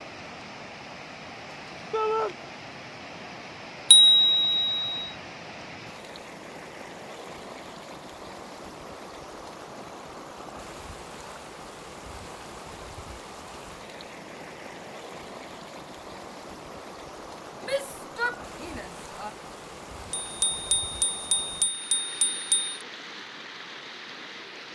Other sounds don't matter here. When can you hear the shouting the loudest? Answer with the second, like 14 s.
2 s.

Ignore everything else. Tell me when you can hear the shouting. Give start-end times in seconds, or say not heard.
1.9-2.4, 17.6-19.3.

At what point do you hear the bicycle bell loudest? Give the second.
4 s.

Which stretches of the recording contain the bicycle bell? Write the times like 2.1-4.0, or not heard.
3.9-5.1, 20.1-22.8.